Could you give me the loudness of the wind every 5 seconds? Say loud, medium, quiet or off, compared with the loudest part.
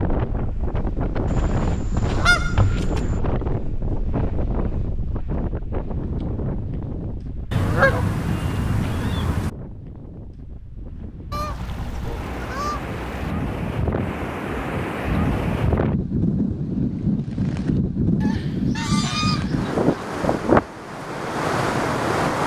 medium, medium, medium, loud, loud.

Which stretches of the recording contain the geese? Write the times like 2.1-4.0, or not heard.
1.2-3.2, 7.5-9.5, 11.3-13.3, 18.2-20.1.